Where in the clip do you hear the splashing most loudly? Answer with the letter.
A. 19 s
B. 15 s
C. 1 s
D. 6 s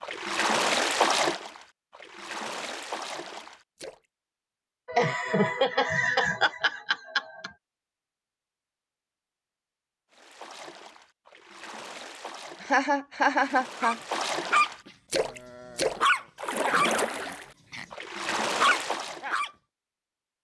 C.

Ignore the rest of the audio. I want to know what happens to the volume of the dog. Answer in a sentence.
The loudness of the dog goes down, then up.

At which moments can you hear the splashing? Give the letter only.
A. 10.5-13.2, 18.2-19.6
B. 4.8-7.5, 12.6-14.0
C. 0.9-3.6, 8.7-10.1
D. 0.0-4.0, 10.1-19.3
D.